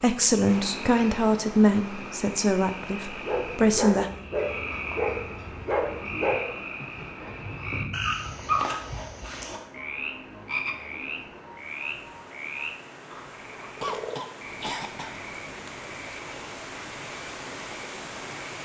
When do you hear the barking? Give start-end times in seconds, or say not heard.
3.2-8.8.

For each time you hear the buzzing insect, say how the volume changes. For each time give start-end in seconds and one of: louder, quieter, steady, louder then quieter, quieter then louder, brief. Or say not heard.
not heard.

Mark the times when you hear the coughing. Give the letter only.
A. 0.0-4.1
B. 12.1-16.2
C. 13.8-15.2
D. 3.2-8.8
C.